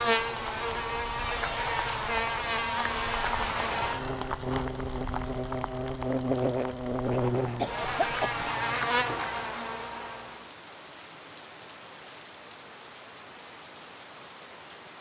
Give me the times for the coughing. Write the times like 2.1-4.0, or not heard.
7.5-8.5.